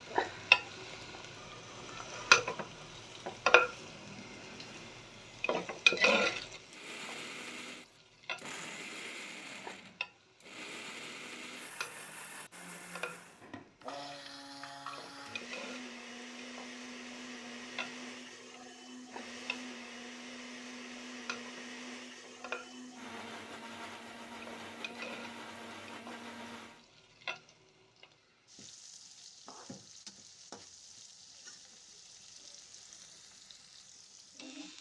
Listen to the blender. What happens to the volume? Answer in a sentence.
The loudness of the blender stays about the same.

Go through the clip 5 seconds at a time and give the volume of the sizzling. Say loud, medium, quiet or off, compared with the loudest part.
loud, loud, quiet, quiet, quiet, quiet, quiet.